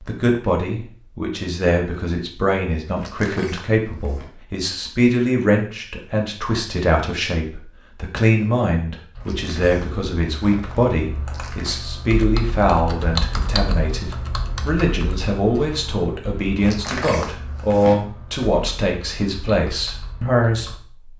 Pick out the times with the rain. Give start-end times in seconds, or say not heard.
not heard.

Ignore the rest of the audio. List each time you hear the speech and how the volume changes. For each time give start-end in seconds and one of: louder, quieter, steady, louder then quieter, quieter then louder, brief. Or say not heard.
0.0-21.1 steady.